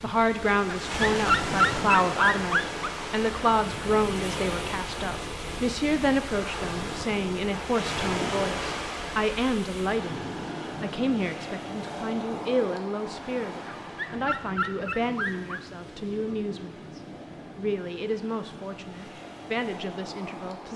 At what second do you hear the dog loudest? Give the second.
1 s.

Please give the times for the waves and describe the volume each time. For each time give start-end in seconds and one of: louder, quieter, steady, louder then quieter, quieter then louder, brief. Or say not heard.
0.0-20.7 quieter.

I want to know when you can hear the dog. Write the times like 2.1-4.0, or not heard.
0.7-3.0, 13.7-15.6.